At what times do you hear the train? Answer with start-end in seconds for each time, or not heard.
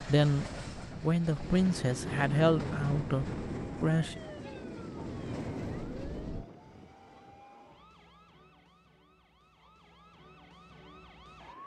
0.0-6.5.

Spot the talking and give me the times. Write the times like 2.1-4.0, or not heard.
0.0-4.2.